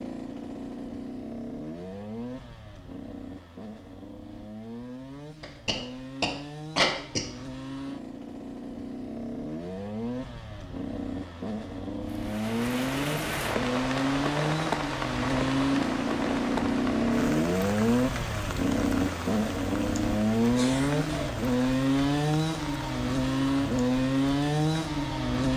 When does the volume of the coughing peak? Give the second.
7 s.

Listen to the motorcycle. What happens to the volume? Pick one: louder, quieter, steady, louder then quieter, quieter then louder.
louder.